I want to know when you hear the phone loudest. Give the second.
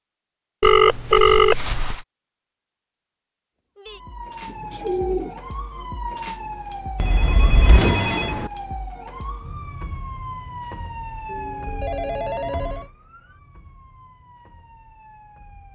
1 s.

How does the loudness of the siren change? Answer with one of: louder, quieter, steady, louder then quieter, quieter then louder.
quieter.